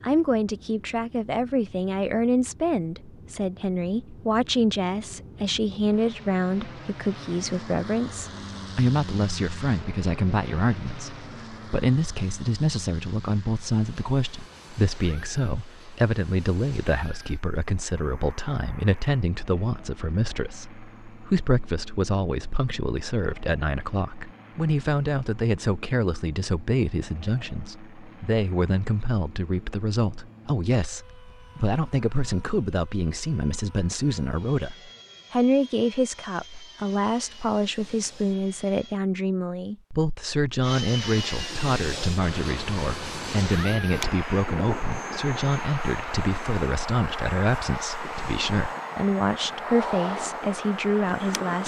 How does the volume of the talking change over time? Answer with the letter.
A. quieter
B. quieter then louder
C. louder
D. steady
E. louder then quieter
D.